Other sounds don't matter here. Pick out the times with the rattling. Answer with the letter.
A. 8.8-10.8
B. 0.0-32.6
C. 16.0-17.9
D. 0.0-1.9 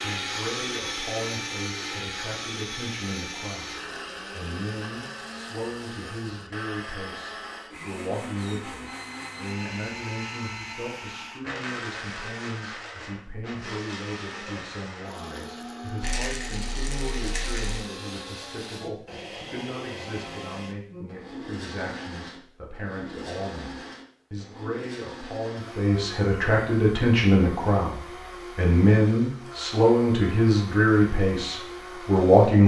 C.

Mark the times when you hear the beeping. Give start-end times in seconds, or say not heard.
8.8-10.8.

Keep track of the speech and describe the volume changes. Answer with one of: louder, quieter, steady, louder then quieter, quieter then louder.
louder.